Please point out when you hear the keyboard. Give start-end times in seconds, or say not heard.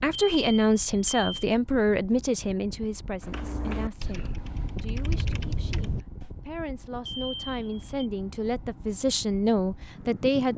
3.2-6.3.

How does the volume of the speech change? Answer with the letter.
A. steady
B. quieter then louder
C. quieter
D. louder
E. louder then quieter
B.